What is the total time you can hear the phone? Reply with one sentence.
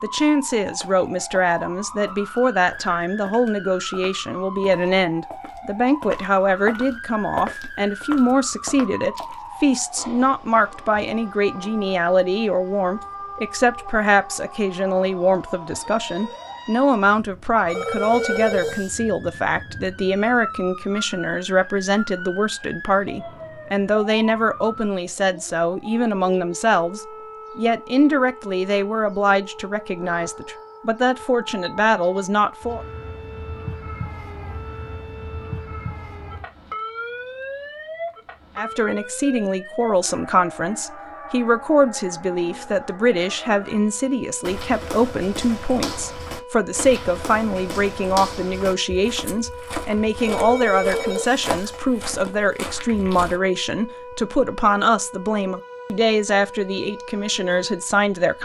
You can hear the phone for 3 seconds altogether.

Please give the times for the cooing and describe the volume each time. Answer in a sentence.
You can't hear the cooing here.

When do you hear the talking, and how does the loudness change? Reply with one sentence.
You can hear the talking from 0.0 to 32.9 s, at a steady volume; and from 38.5 to 58.3 s, at a steady volume.